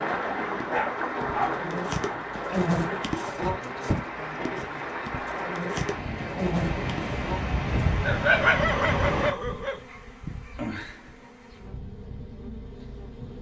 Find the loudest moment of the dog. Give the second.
8 s.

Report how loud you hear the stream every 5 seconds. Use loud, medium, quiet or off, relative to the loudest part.
loud, loud, off.